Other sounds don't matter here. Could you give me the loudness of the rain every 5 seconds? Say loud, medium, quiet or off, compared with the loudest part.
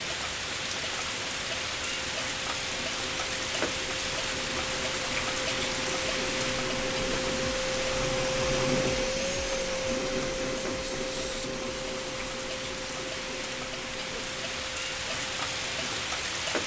loud, loud, medium, loud.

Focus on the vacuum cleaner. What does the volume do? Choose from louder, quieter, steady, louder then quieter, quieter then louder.
louder then quieter.